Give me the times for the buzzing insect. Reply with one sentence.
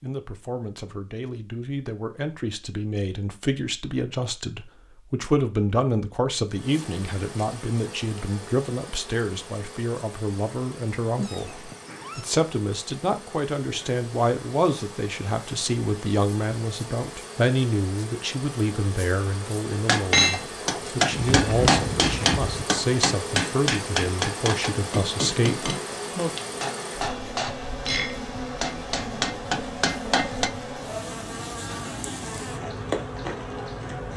The buzzing insect can be heard from 6.5 to 34.1 s.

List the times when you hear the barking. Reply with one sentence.
The barking can't be heard in this clip.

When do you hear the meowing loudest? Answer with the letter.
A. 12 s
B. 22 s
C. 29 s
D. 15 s
B.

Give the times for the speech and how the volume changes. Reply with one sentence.
You can hear the speech from 0.0 to 26.4 s, at a steady volume.